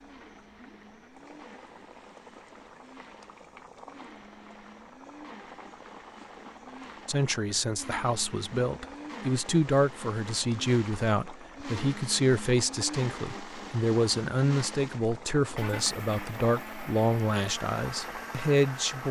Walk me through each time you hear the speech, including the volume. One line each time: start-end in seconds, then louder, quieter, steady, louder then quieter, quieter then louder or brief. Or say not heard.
7.0-19.0 steady.